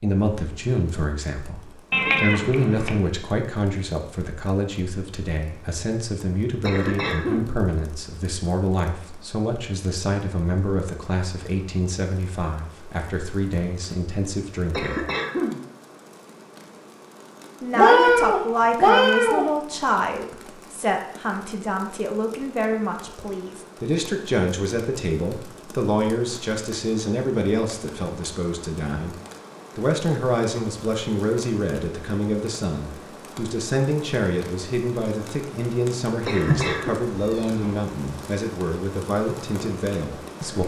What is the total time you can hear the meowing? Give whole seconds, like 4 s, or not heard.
4 s.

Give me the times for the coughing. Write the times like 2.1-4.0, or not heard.
6.6-7.5, 14.7-15.6, 36.2-37.0.